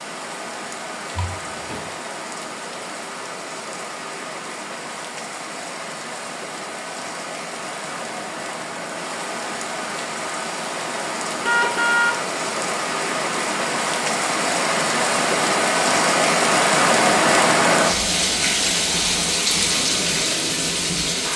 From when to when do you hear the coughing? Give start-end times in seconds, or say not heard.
not heard.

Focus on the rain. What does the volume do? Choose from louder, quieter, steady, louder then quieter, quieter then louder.
louder.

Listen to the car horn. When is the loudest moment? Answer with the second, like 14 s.
12 s.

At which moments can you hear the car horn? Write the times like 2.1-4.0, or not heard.
1.1-1.9, 11.4-12.2.